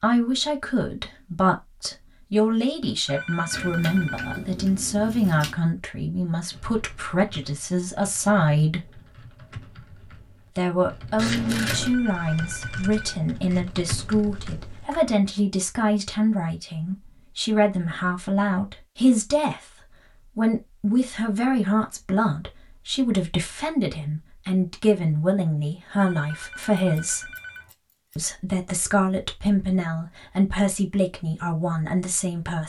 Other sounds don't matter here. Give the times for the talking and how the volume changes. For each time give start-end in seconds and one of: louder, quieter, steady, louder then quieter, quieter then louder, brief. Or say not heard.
0.0-8.9 steady
10.6-27.3 steady
28.1-32.6 steady.